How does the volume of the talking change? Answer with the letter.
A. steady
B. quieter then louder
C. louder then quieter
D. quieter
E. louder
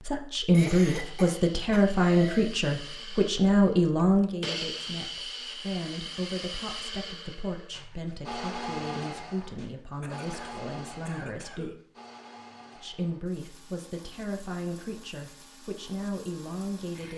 D.